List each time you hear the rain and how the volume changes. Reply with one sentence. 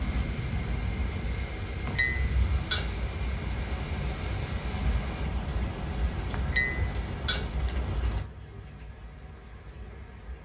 The rain can be heard from 0.0 to 10.4 s, getting quieter.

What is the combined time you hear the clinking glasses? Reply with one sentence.
The clinking glasses can be heard for 2 seconds in total.